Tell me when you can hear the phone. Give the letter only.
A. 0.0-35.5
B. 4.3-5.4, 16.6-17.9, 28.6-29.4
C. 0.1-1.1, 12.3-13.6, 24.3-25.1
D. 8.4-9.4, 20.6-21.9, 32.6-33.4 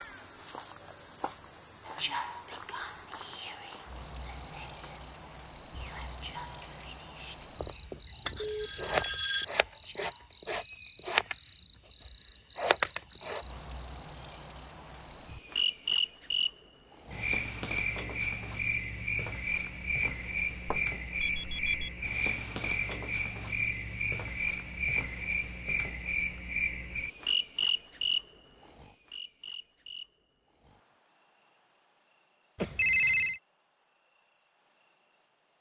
D.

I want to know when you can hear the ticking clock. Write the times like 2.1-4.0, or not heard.
not heard.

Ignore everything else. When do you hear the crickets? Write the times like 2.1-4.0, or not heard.
0.0-35.5.